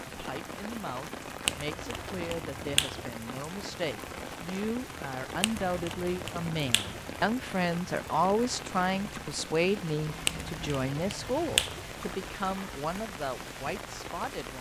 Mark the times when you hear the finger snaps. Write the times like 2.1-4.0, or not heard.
1.4-3.0, 5.4-7.0, 10.2-11.8.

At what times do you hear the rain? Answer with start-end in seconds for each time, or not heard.
0.0-14.5.